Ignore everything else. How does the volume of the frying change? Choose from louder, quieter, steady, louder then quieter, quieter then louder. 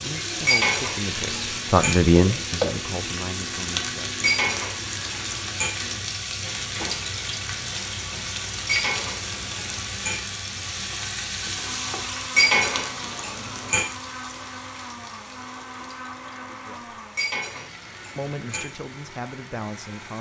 quieter.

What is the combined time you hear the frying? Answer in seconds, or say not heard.
20 s.